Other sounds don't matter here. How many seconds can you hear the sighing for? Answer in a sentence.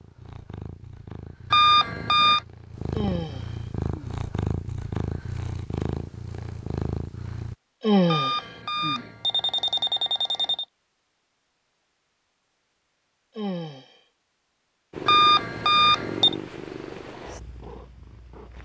The sighing can be heard for 3 seconds in total.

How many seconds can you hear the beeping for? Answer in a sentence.
You can hear the beeping for 5 seconds altogether.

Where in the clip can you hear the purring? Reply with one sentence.
The purring can be heard from 0.0 to 7.5 s and from 14.9 to 18.5 s.